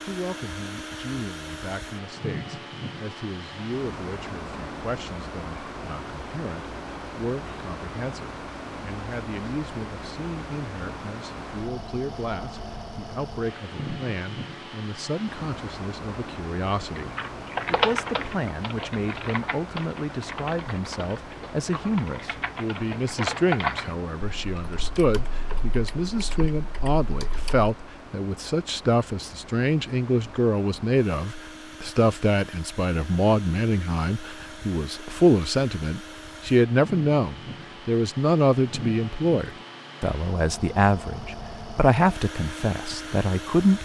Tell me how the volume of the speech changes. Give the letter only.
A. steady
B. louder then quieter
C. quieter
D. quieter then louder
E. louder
E.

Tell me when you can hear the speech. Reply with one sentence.
You can hear the speech from 0.1 to 43.8 s.